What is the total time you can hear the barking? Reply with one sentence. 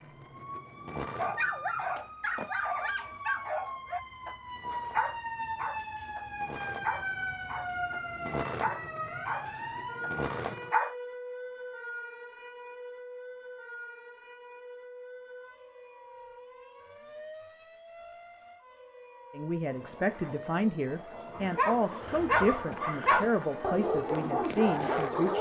The barking can be heard for 14 seconds in total.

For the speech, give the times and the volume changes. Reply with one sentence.
The speech can be heard from 19.4 to 25.3 s, at a steady volume.